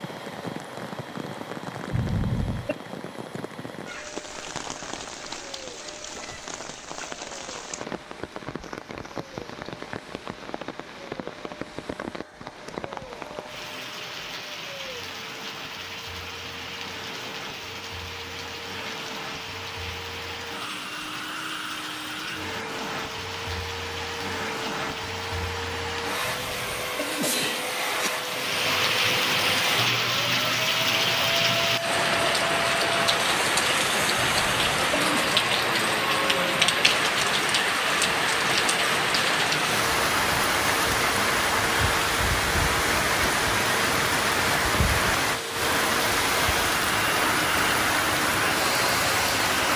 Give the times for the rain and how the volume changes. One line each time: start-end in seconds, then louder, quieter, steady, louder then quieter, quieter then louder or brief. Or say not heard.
0.0-49.7 louder.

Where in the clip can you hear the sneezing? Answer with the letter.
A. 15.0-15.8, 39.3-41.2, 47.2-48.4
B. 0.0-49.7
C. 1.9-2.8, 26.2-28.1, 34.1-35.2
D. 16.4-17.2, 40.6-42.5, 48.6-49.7
C.